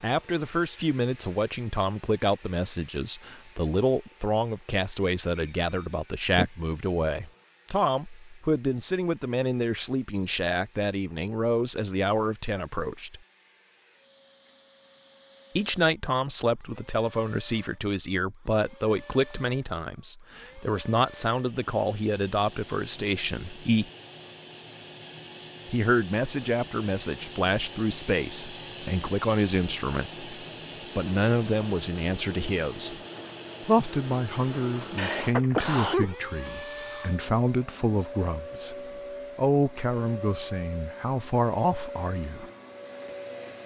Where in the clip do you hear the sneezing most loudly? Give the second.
36 s.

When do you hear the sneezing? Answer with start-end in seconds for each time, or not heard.
5.3-6.5, 35.0-36.1.